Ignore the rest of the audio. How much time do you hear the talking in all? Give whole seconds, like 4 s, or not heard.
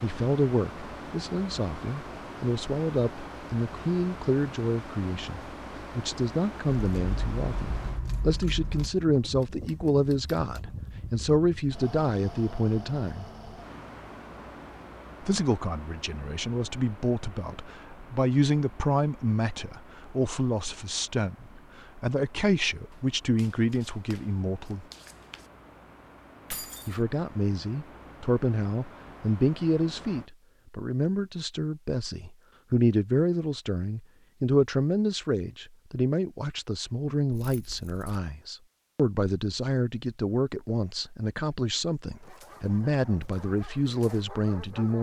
41 s.